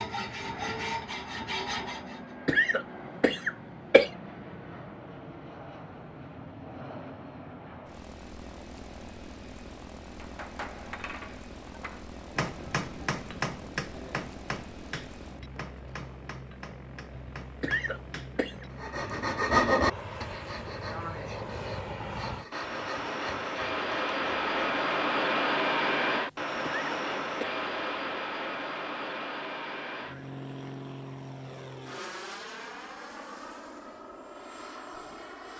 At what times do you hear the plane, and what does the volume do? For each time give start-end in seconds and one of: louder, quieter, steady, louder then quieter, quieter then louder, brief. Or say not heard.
0.1-35.5 louder then quieter.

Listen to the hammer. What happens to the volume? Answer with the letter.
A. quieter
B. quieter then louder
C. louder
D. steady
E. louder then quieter
E.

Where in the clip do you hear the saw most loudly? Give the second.
20 s.